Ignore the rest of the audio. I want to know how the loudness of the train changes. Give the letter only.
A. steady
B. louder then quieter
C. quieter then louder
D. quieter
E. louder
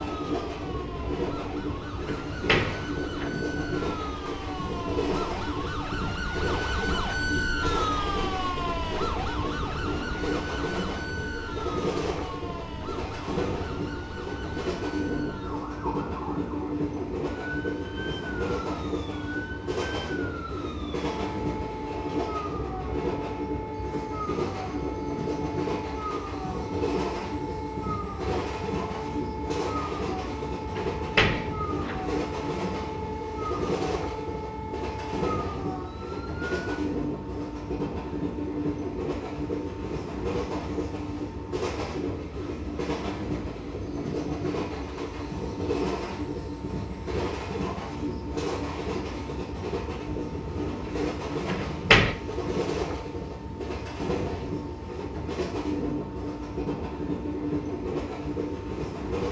A.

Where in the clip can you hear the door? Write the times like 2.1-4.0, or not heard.
2.0-3.4, 30.8-32.0, 51.5-52.1.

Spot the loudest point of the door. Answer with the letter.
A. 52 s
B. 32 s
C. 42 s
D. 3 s
A.